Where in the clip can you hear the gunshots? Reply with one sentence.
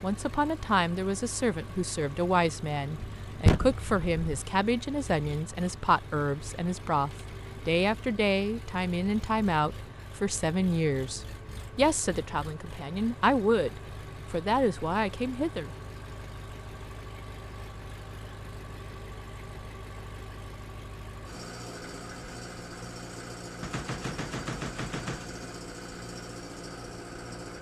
You can hear the gunshots from 3.0 to 4.3 s and from 23.6 to 25.4 s.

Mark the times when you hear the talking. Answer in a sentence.
The talking can be heard from 0.0 to 15.7 s.